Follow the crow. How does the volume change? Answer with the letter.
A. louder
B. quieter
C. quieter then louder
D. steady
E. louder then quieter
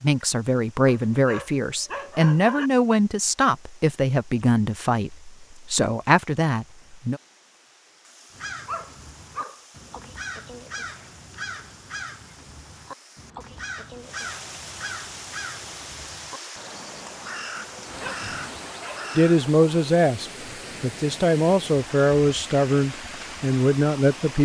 D.